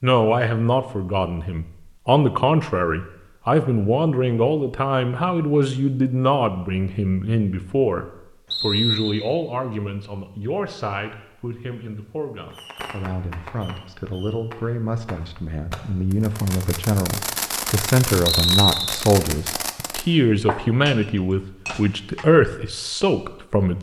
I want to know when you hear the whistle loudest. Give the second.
19 s.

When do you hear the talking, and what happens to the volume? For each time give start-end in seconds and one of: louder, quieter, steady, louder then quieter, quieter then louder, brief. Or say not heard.
0.0-23.7 quieter then louder.